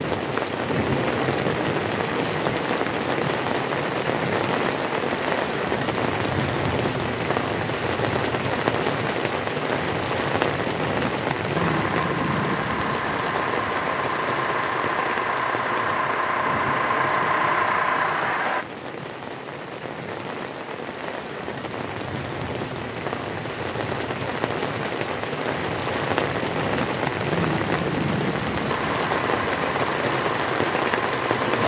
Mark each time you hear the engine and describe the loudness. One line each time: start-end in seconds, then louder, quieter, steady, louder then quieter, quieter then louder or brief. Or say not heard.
11.6-18.6 louder
28.6-31.4 brief.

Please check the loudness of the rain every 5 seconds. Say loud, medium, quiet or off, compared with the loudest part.
loud, loud, loud, medium, medium, loud, loud.